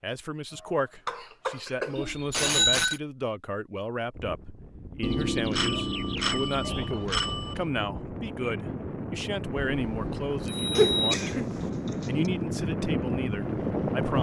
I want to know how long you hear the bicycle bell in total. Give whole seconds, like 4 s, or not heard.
5 s.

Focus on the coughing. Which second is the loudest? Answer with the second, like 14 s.
11 s.